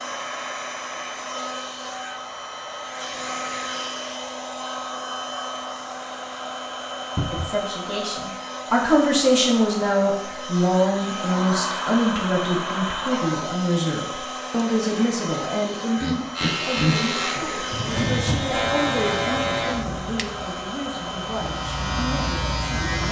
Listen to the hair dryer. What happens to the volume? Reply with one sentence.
The volume of the hair dryer stays about the same.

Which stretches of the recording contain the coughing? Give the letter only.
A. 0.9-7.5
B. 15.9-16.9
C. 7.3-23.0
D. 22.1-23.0
B.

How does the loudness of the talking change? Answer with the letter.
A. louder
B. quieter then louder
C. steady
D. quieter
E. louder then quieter
D.